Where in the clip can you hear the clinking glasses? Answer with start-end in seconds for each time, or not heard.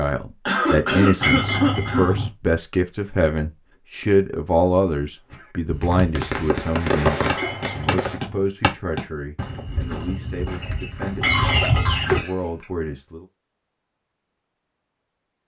1.2-2.3, 7.3-8.4, 11.2-12.2.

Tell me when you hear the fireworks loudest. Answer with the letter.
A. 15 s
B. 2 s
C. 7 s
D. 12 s
C.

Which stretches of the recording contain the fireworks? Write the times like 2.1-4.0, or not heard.
5.3-8.2.